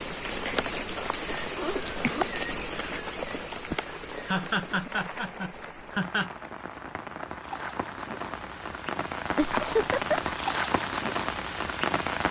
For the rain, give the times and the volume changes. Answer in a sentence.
The rain can be heard from 0.0 to 12.2 s, getting quieter then louder.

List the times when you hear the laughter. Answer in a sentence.
You can hear the laughter from 1.4 to 2.3 s, from 4.2 to 6.3 s and from 9.3 to 10.3 s.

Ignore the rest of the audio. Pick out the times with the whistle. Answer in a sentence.
The whistle can't be heard in this clip.